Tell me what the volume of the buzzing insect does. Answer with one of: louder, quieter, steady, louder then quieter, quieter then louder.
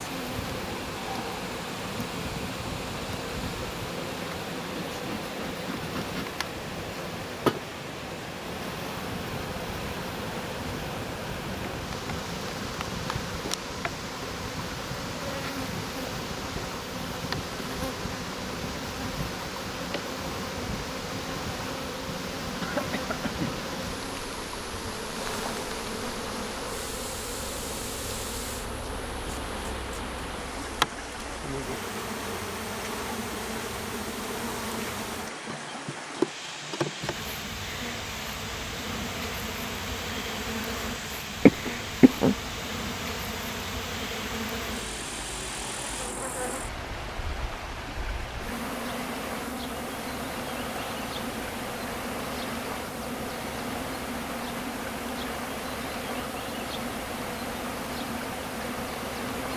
steady.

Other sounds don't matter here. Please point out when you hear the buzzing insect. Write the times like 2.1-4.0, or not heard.
0.0-59.5.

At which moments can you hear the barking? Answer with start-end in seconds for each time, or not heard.
not heard.